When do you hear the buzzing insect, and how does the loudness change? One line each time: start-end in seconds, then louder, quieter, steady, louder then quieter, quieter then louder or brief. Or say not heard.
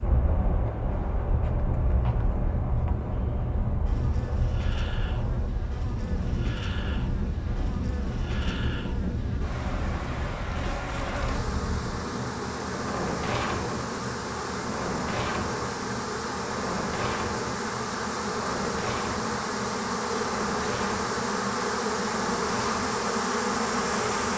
0.0-24.3 louder.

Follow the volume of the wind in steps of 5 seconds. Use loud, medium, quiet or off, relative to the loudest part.
loud, loud, loud, loud, medium.